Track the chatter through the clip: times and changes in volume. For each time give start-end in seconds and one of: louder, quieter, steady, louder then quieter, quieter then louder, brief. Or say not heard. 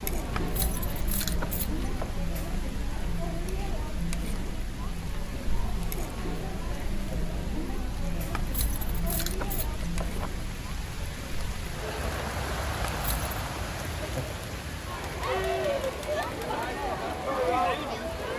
0.0-18.3 louder.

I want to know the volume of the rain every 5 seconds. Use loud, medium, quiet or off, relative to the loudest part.
medium, medium, loud, medium.